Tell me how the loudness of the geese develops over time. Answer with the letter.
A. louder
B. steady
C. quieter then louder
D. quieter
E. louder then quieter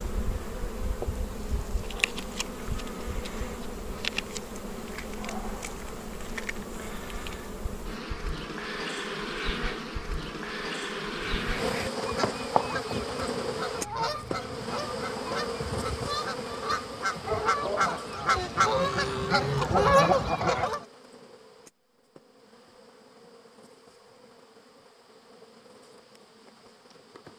A.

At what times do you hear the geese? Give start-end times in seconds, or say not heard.
11.2-20.8.